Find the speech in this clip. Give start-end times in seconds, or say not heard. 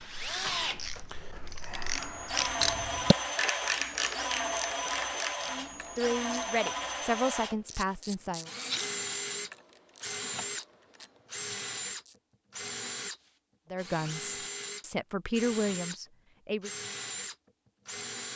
5.5-8.5, 13.7-16.7.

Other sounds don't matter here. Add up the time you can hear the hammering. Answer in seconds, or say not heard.
not heard.